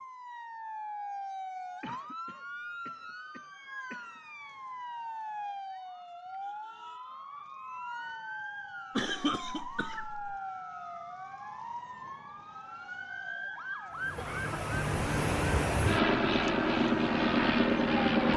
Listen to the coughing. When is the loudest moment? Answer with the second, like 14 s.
9 s.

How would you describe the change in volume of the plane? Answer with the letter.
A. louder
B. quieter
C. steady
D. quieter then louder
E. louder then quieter
A.